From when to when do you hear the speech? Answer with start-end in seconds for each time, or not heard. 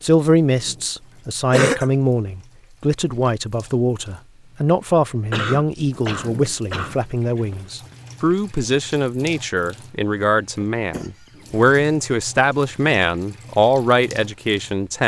0.0-15.0.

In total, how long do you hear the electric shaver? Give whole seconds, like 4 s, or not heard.
not heard.